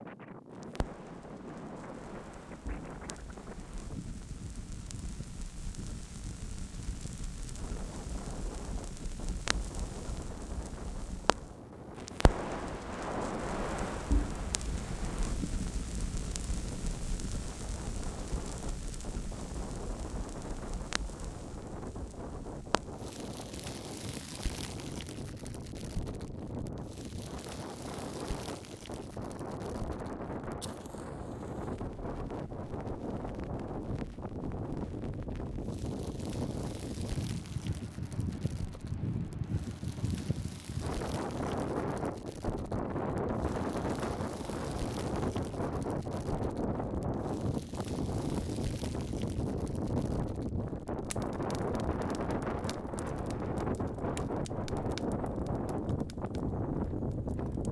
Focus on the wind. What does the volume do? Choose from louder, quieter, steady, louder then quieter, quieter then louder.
louder.